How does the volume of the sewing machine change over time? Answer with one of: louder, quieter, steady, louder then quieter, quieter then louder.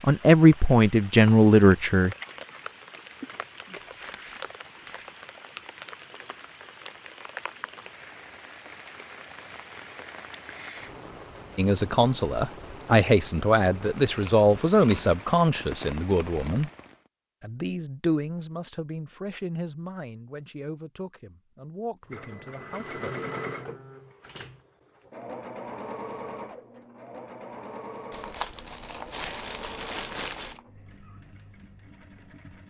quieter.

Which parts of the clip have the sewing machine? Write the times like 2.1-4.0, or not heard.
22.1-32.6.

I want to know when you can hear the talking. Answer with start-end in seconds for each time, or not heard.
0.0-2.1, 11.6-16.7, 17.4-23.1.